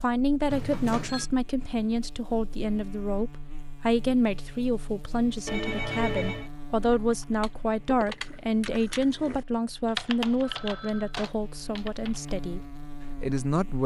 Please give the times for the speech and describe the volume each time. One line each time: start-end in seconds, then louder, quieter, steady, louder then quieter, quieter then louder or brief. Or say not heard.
0.0-12.6 steady
13.2-13.8 brief.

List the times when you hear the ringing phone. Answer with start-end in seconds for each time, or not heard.
0.5-1.3, 5.5-6.5, 10.4-11.2.